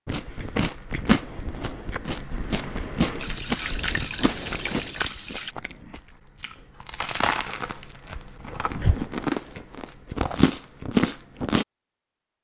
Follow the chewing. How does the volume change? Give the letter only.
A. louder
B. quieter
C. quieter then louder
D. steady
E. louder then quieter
C.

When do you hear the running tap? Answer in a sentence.
You can hear the running tap from 3.1 to 5.5 s.